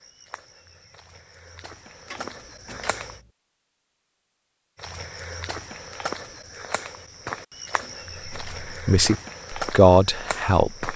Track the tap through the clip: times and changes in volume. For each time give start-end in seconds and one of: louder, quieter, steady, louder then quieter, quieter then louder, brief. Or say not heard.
not heard.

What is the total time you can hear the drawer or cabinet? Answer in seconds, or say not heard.
2 s.